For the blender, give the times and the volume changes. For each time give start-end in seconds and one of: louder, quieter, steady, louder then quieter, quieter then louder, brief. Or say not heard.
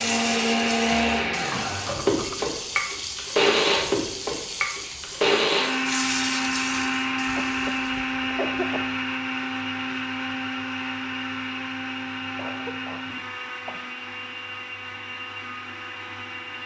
0.0-16.6 quieter.